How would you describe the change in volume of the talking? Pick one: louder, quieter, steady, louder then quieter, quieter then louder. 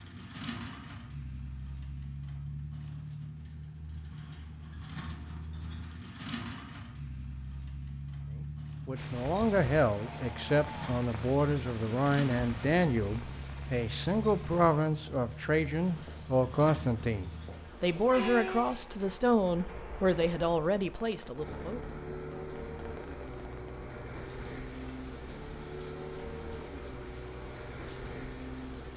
steady.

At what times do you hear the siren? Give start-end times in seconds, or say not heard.
not heard.